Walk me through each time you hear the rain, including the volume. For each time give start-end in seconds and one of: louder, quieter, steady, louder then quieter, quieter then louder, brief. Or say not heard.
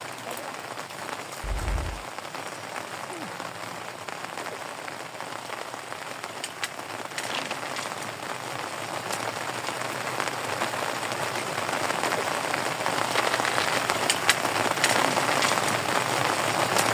0.0-16.8 louder.